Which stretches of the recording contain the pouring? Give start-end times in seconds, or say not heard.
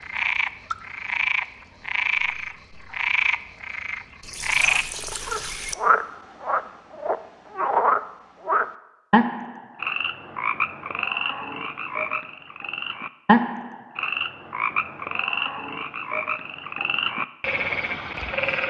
4.2-5.8.